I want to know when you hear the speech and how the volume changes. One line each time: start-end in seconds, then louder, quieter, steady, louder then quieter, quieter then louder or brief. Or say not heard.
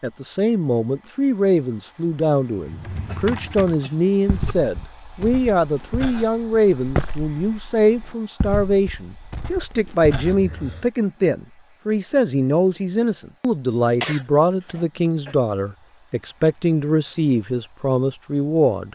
0.0-18.9 steady.